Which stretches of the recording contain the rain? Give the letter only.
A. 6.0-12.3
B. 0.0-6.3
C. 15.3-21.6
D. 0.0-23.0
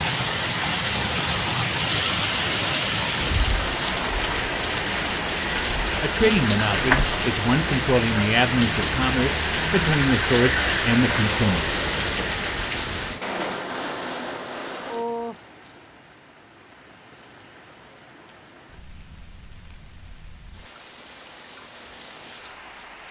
D.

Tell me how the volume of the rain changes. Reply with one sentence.
The loudness of the rain goes down.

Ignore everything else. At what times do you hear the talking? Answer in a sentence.
The talking can be heard from 6.0 to 12.3 s.